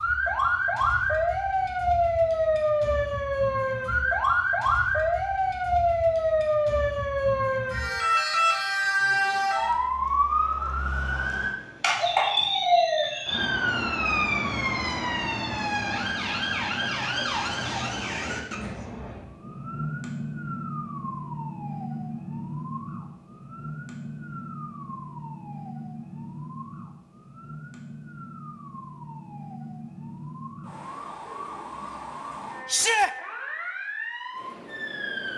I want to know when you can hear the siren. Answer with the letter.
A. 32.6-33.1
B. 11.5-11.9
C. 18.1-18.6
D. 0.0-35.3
D.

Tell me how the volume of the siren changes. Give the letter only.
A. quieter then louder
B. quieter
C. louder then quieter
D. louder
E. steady
B.